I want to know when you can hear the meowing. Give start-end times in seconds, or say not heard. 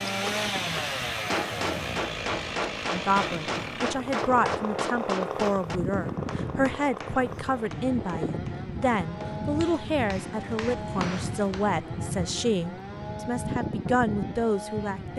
not heard.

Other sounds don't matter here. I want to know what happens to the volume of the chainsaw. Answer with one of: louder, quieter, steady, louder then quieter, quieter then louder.
quieter.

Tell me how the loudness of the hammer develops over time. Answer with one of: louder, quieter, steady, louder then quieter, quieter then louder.
quieter then louder.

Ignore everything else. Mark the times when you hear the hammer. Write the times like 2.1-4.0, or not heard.
0.1-11.7.